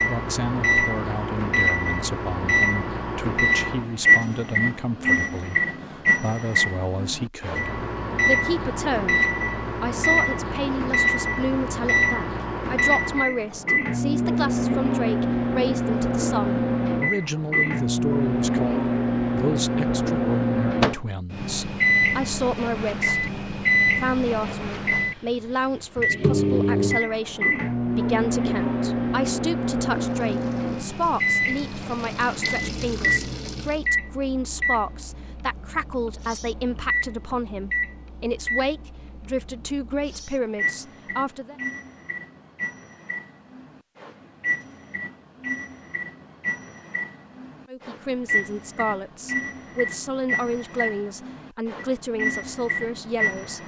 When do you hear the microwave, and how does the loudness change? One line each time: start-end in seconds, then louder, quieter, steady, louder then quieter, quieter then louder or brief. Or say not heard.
0.0-53.6 quieter.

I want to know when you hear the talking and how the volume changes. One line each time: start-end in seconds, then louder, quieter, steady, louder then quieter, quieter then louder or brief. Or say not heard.
0.1-23.2 steady
23.9-41.5 steady
47.7-53.6 steady.